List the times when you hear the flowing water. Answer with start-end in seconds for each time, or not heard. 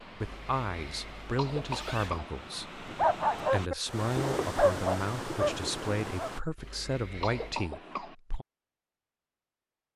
0.0-6.4.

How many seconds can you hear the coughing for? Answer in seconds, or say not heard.
2 s.